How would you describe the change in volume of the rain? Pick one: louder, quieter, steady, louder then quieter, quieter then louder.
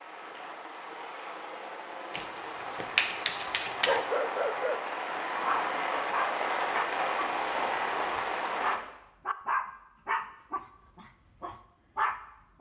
louder.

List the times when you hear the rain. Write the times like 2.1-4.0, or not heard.
0.0-8.8.